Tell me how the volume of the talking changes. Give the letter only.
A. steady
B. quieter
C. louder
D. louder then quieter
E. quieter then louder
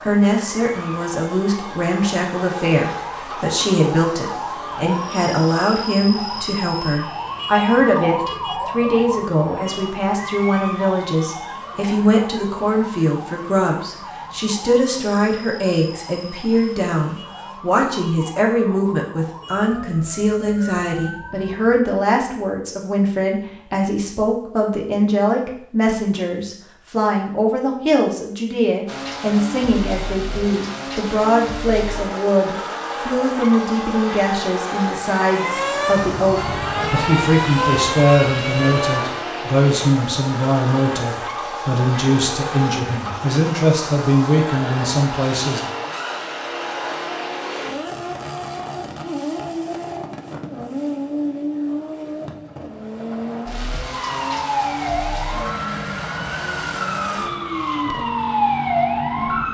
A.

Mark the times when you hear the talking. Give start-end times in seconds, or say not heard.
0.0-45.6.